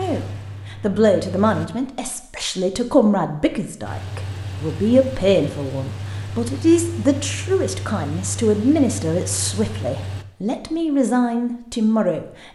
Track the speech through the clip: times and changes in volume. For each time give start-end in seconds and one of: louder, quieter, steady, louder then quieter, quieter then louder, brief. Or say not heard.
0.0-12.5 steady.